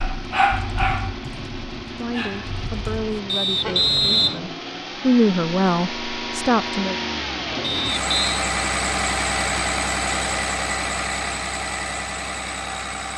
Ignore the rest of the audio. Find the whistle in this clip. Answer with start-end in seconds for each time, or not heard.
3.2-4.4, 7.6-8.4.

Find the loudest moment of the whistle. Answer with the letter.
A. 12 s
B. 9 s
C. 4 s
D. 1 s
C.